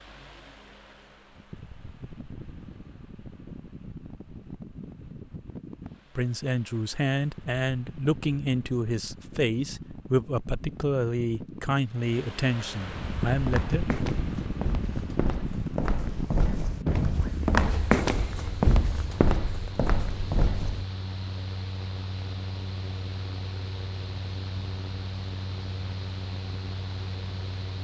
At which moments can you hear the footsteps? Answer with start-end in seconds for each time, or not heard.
12.8-20.9.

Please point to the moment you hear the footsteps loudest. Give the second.
18 s.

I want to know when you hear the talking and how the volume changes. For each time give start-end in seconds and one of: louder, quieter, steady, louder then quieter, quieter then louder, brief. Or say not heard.
6.2-13.9 steady.